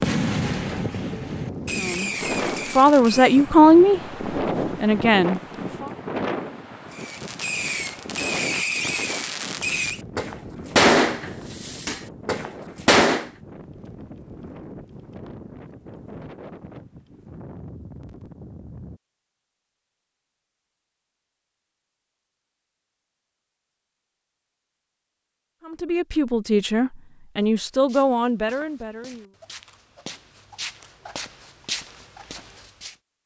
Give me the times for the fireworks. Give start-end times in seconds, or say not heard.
0.0-3.5, 6.9-13.3.